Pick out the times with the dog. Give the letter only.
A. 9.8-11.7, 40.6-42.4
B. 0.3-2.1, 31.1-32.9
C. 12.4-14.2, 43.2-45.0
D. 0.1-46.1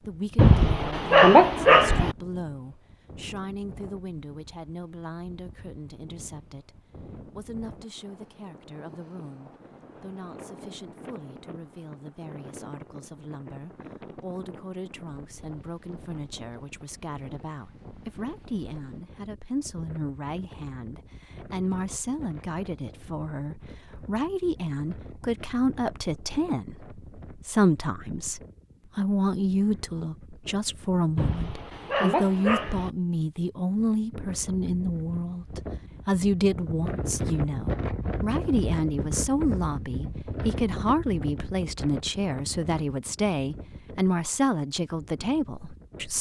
B.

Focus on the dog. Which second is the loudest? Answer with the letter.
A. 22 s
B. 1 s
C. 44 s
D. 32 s
B.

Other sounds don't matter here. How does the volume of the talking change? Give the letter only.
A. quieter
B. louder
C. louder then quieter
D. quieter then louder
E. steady
B.